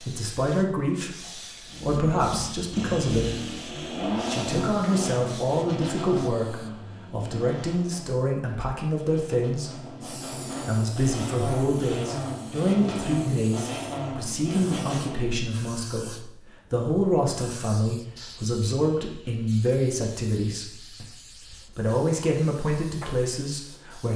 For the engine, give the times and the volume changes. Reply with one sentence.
The engine can be heard from 1.6 to 15.5 s, getting quieter then louder.